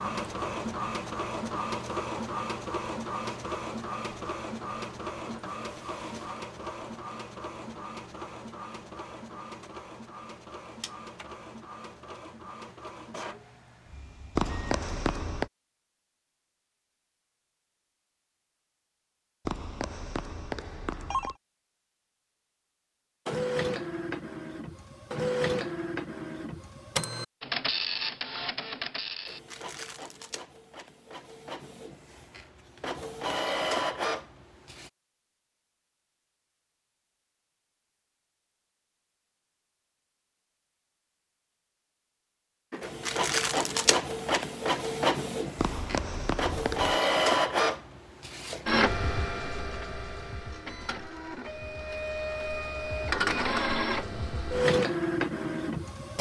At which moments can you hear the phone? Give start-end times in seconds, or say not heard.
14.3-15.5, 19.4-21.4, 45.5-47.0.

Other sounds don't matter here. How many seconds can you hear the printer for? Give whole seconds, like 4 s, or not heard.
40 s.